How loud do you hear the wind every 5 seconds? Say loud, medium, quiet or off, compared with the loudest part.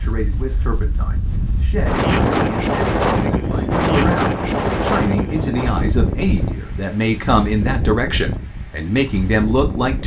loud, medium.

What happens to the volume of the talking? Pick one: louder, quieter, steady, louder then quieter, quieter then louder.
louder.